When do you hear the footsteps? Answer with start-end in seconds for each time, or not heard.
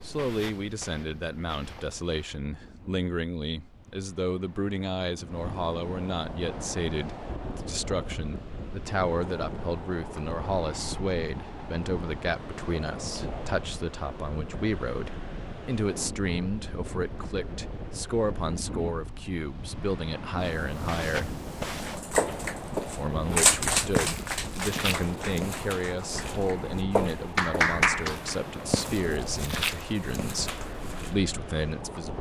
0.0-2.4, 20.4-31.1.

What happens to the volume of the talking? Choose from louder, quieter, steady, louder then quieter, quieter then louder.
steady.